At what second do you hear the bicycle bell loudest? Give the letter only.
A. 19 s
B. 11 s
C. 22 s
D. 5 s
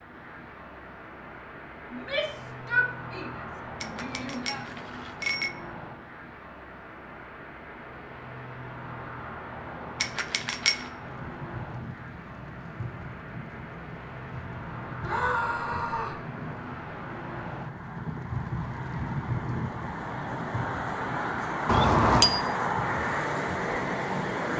C.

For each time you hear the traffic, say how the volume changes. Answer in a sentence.
The traffic can be heard from 0.0 to 24.5 s, getting louder.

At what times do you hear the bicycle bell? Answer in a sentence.
You can hear the bicycle bell from 3.8 to 5.5 s, from 10.0 to 10.8 s and from 21.6 to 22.4 s.